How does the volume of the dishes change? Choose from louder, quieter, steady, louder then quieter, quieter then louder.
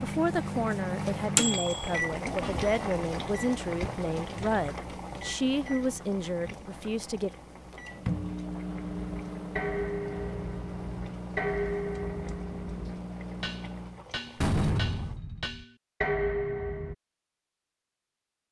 quieter then louder.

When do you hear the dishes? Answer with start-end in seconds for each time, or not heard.
8.9-16.9.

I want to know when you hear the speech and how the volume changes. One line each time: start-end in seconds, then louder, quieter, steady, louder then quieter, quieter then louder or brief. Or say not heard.
0.0-7.3 steady.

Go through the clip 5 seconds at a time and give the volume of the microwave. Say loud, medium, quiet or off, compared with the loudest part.
loud, medium, medium, off.